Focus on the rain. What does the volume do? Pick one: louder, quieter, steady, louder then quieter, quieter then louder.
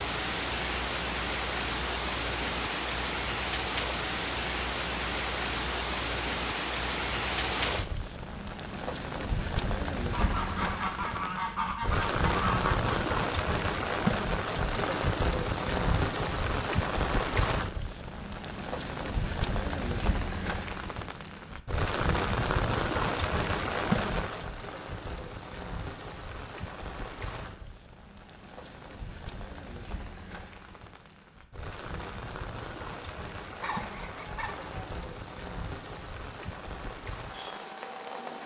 quieter.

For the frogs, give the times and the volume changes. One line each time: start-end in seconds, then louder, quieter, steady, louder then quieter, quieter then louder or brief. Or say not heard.
not heard.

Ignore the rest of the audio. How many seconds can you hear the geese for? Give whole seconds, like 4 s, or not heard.
4 s.